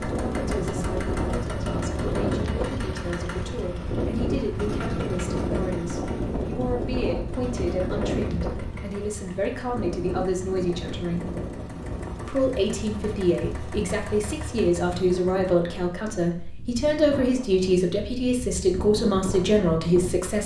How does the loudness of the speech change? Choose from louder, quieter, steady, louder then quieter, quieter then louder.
louder.